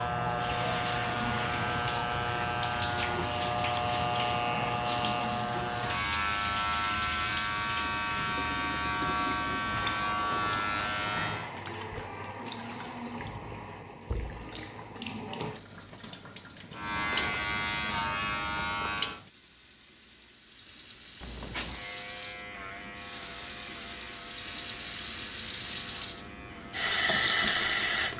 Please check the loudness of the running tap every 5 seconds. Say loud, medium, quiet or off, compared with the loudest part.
quiet, quiet, quiet, quiet, medium, loud.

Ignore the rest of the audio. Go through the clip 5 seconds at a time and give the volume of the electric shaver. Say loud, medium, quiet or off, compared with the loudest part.
loud, loud, loud, loud, quiet, quiet.